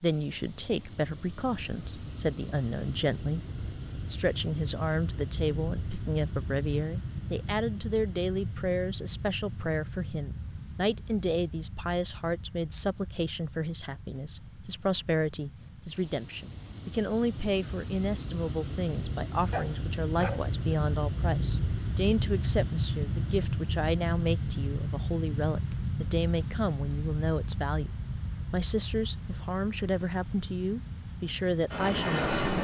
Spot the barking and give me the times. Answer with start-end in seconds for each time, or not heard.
19.5-20.8.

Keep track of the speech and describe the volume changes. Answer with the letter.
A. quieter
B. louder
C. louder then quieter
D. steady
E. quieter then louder
D.